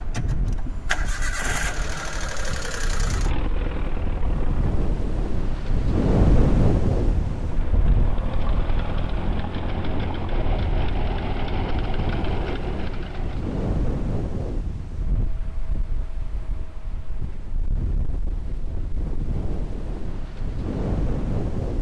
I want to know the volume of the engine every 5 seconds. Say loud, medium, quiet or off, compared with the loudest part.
loud, loud, loud, off, off.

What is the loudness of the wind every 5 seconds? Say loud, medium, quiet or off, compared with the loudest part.
medium, loud, medium, medium, loud.